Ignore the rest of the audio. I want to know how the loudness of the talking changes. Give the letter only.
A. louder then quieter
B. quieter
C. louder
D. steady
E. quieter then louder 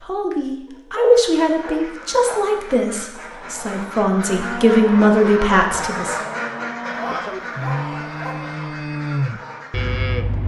E.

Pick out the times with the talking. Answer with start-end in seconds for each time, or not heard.
0.0-6.2.